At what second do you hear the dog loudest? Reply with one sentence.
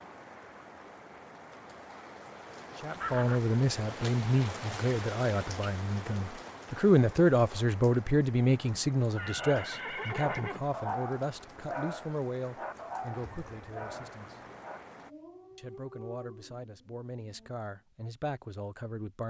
The volume of the dog peaks at 11 seconds.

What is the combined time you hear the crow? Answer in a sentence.
The crow can't be heard in this clip.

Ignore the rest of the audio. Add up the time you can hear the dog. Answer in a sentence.
You can hear the dog for 8 seconds altogether.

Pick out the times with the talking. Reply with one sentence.
You can hear the talking from 2.8 to 14.4 s and from 15.6 to 19.2 s.